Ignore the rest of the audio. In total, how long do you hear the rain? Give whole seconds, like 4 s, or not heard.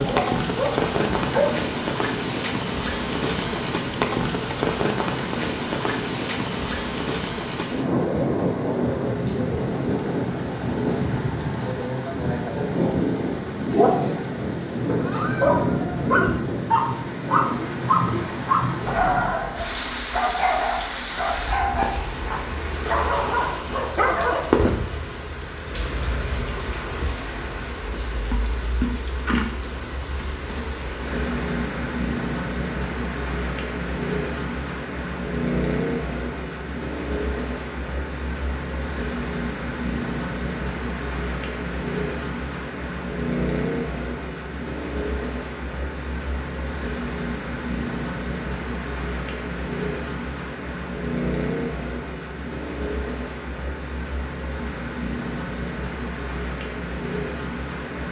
58 s.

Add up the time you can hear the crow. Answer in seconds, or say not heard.
not heard.